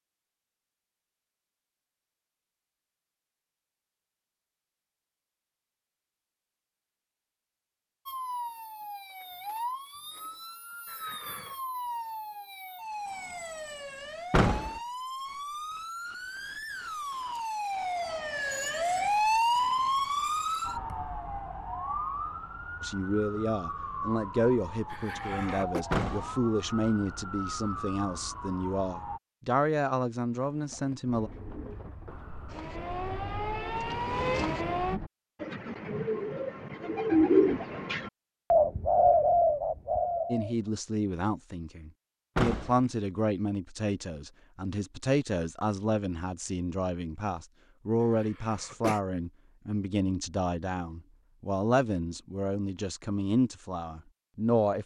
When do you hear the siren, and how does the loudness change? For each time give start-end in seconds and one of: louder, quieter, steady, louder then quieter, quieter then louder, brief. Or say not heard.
8.1-29.2 louder then quieter
32.0-35.0 brief.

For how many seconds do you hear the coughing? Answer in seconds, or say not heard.
3 s.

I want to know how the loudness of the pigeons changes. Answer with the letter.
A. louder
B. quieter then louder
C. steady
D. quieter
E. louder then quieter
A.